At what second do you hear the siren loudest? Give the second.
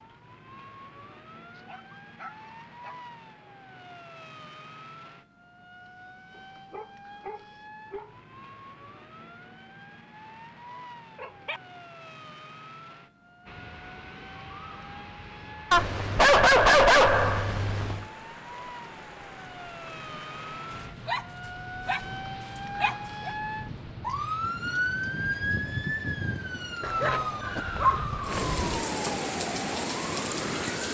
25 s.